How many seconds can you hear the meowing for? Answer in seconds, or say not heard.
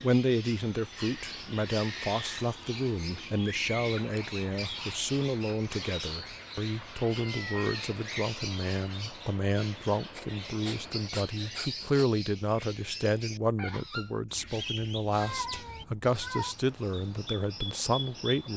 3 s.